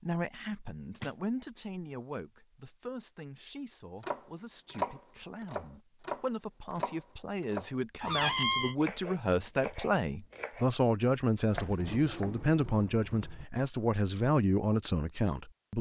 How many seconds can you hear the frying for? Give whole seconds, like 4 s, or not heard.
not heard.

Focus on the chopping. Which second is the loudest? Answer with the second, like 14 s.
5 s.